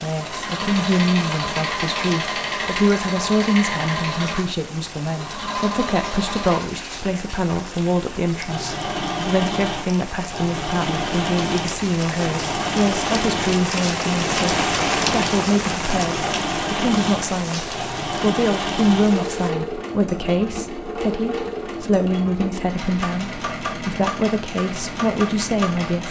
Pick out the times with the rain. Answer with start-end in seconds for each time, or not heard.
0.0-19.5.